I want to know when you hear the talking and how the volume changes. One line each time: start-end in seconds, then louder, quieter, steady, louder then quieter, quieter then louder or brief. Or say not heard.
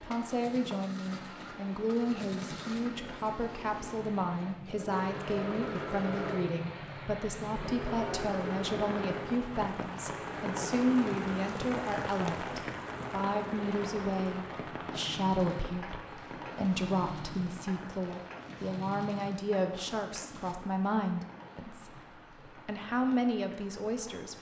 0.0-24.3 steady.